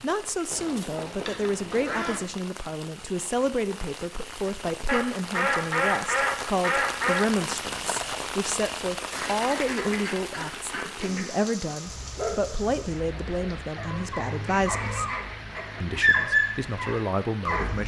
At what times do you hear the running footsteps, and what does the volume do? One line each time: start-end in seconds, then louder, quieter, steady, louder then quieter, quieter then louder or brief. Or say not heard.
not heard.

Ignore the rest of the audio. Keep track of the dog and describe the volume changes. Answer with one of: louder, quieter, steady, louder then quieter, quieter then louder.
louder.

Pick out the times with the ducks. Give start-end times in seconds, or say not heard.
0.5-2.2, 4.8-7.2, 9.1-11.4, 14.6-16.0.